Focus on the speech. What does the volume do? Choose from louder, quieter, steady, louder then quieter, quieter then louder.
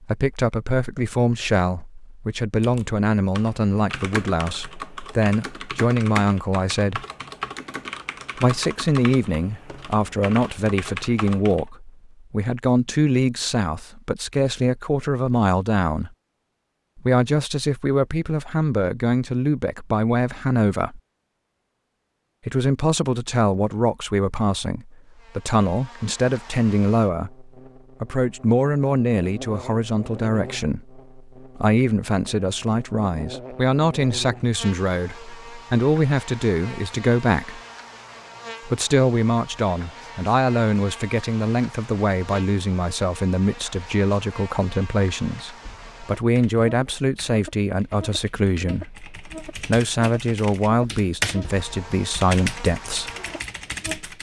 steady.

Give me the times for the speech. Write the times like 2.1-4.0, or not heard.
0.0-7.0, 8.3-16.1, 16.9-21.0, 22.4-37.6, 38.6-53.1.